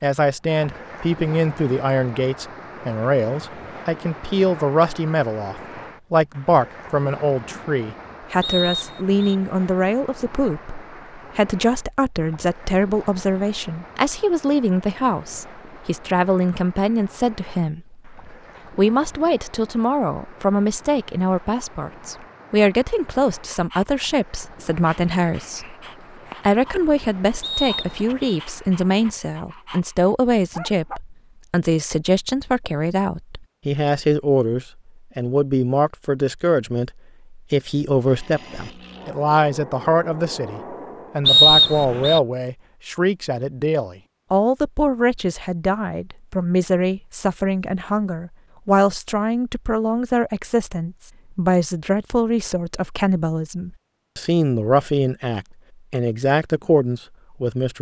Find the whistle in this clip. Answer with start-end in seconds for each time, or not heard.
8.4-9.2, 27.4-28.4, 41.2-42.2.